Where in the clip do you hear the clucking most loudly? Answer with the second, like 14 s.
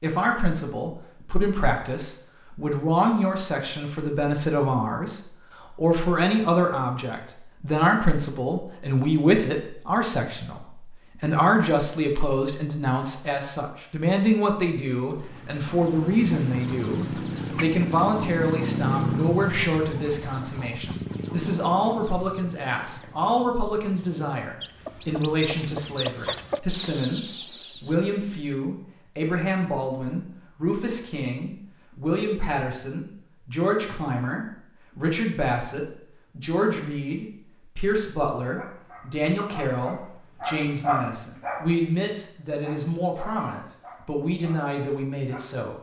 19 s.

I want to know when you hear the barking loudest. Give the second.
41 s.